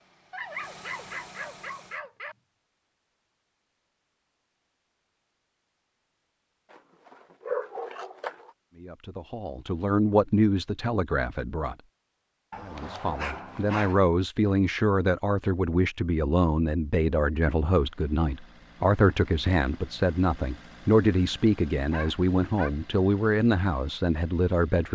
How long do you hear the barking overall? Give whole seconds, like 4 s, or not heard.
6 s.